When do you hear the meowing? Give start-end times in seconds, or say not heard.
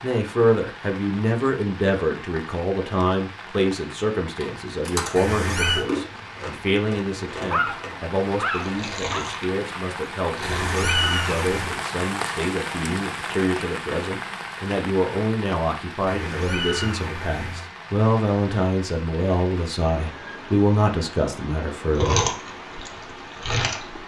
5.2-5.8, 10.4-11.8, 16.1-17.7.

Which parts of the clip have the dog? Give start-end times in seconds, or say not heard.
7.5-9.2.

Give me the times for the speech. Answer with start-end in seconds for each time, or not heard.
0.0-22.2.